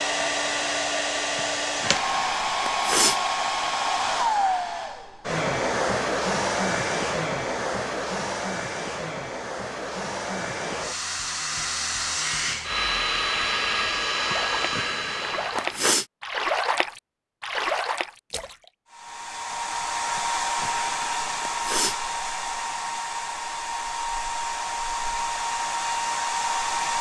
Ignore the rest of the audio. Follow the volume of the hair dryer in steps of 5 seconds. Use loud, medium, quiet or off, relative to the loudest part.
loud, loud, loud, medium, loud, loud.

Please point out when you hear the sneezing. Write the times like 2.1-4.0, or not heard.
1.4-3.2, 14.3-16.1, 20.1-22.0.